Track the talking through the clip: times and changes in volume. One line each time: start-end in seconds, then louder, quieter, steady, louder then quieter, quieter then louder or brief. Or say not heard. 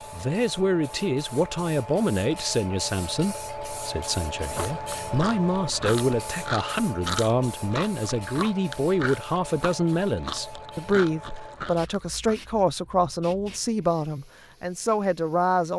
0.1-15.7 steady.